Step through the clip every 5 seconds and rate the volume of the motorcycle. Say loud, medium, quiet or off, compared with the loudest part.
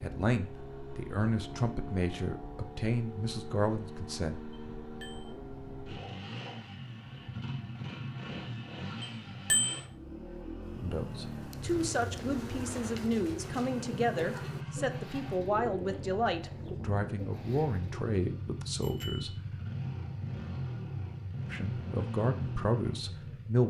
medium, loud, loud, loud, loud.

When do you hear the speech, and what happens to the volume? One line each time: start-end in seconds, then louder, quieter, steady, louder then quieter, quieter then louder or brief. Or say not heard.
0.0-4.4 louder
10.8-19.4 steady
21.5-23.6 brief.